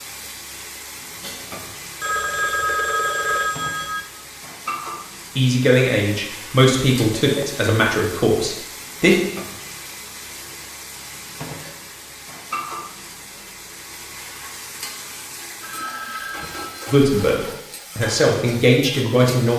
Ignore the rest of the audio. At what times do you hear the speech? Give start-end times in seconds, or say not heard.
5.3-9.2, 16.9-19.5.